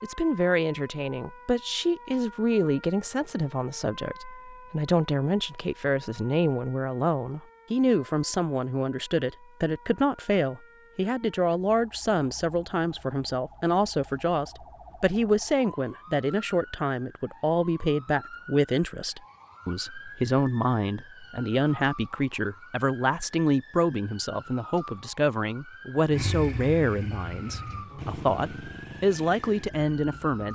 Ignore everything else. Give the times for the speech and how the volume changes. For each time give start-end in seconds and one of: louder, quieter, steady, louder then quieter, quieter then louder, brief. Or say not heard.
0.0-30.4 steady.